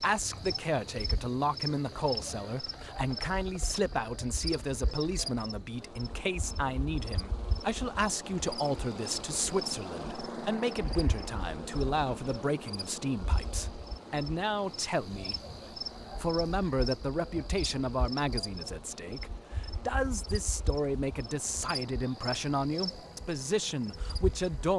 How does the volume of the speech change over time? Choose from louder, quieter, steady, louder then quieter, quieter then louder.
steady.